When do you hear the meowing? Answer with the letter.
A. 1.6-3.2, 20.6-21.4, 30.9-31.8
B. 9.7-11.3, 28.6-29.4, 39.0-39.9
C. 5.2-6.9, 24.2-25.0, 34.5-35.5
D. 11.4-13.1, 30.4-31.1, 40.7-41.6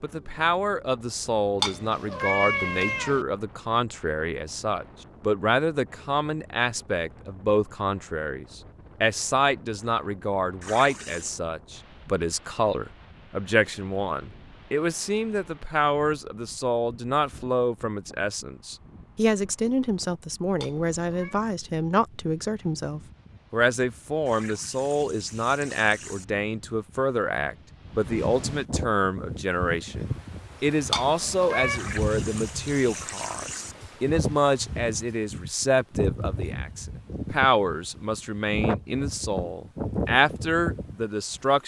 A.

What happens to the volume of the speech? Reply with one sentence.
The volume of the speech stays about the same.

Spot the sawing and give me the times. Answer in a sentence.
You can't hear the sawing here.